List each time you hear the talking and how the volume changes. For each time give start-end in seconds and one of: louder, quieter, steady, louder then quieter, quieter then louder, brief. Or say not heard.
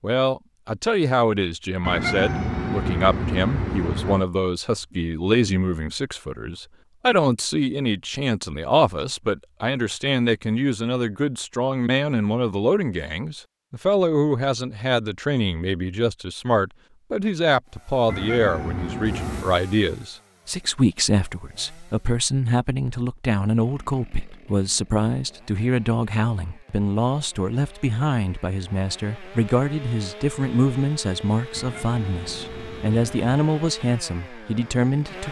0.0-35.2 steady.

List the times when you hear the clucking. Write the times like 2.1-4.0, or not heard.
not heard.